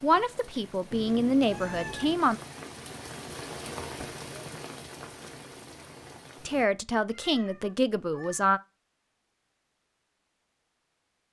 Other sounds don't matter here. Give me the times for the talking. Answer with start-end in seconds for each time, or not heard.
0.0-2.4, 6.5-8.6.